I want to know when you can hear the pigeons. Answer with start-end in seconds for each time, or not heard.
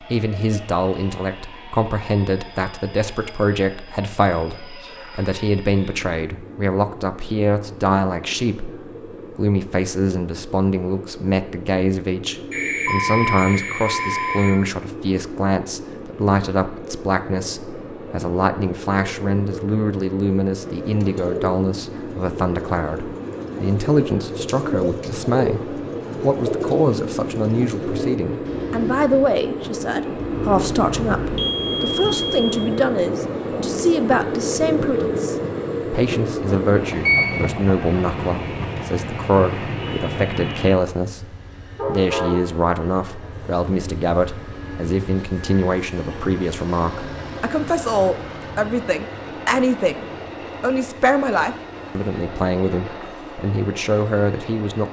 20.8-29.2.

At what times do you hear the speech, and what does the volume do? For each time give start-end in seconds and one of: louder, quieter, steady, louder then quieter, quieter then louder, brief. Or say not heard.
0.0-54.8 steady.